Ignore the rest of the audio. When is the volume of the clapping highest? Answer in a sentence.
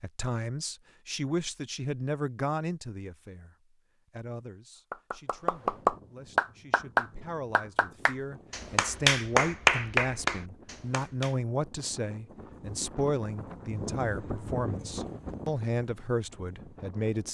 The volume of the clapping peaks at 10 seconds.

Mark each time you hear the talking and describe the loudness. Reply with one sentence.
You can hear the talking from 0.0 to 17.3 s, getting quieter then louder.